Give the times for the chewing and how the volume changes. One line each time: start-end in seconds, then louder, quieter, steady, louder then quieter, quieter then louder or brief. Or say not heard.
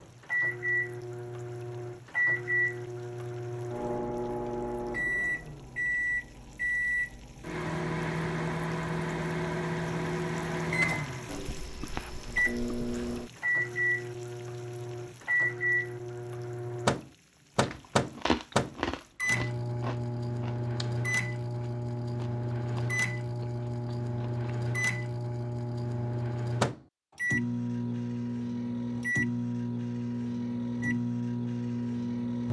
17.6-24.4 quieter.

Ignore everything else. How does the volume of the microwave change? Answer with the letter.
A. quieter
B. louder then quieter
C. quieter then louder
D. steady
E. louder
D.